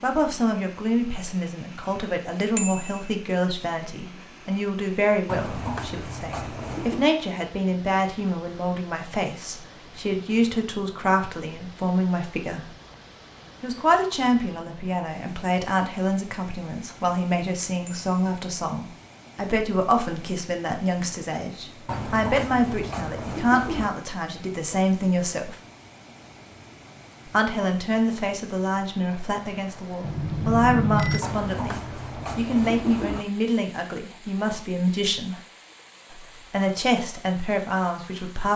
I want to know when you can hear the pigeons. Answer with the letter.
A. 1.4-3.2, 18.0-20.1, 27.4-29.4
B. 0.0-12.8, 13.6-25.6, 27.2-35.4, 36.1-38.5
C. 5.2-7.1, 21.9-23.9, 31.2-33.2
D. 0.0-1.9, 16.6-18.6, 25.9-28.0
C.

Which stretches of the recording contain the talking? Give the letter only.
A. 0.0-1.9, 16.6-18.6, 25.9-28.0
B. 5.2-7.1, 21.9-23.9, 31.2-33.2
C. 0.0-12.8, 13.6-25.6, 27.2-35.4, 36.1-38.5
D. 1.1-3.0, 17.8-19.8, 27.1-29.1
C.